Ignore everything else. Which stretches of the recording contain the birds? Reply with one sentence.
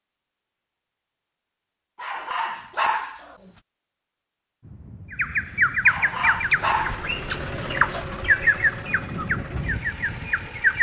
You can hear the birds from 5.1 to 10.7 s.